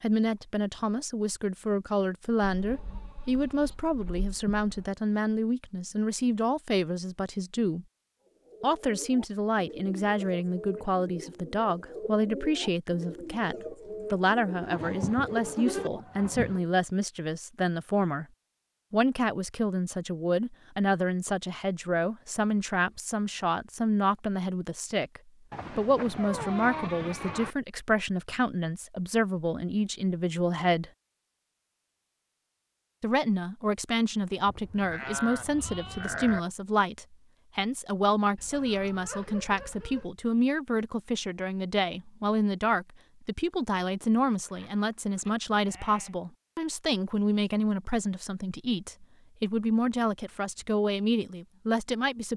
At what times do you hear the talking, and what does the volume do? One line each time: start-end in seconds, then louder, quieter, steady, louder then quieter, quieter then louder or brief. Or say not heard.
0.0-7.8 steady
8.6-18.2 steady
18.9-30.9 steady
33.0-52.3 steady.